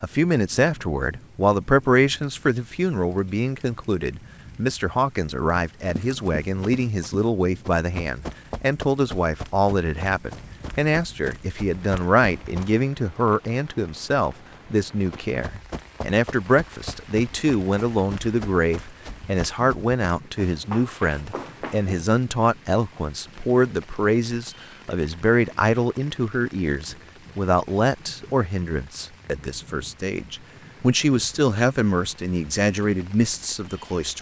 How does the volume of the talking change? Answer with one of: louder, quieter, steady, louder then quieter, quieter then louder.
steady.